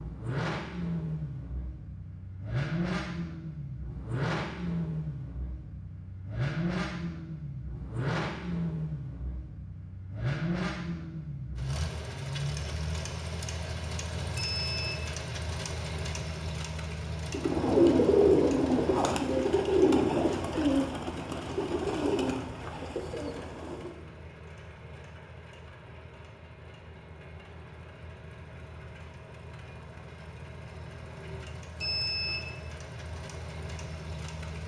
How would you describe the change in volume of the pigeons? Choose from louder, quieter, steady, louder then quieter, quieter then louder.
quieter.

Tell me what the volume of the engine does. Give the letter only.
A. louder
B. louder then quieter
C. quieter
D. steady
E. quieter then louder
C.